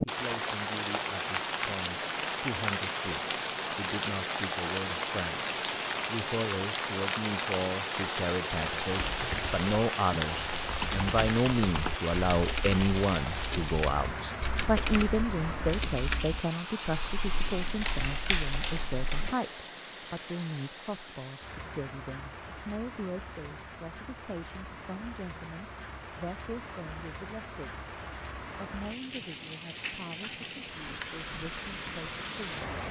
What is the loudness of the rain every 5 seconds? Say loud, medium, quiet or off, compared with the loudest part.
loud, loud, loud, medium, quiet, medium, medium.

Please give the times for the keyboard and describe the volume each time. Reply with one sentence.
The keyboard can be heard from 8.8 to 19.4 s, at a steady volume.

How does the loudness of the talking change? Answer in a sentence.
The volume of the talking goes up, then down.